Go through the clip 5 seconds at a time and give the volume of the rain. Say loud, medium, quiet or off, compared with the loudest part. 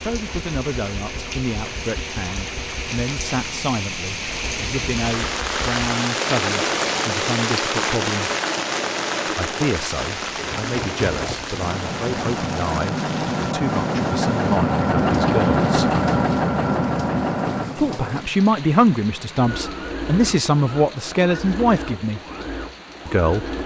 medium, loud, medium, quiet, quiet.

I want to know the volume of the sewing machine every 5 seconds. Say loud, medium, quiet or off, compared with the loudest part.
quiet, medium, loud, loud, medium.